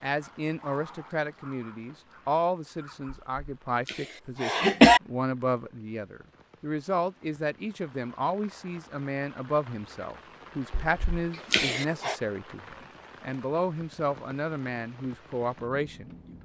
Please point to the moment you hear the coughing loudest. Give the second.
5 s.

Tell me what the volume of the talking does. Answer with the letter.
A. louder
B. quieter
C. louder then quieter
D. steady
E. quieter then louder
D.